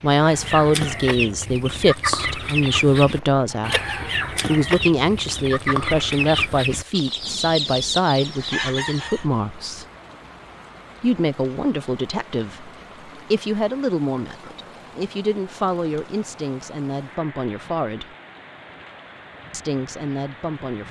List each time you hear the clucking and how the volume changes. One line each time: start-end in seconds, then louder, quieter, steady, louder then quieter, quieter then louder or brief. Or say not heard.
0.2-9.2 steady.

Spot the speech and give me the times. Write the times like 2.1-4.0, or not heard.
0.0-3.8, 4.5-9.8, 11.0-18.1, 19.5-20.8.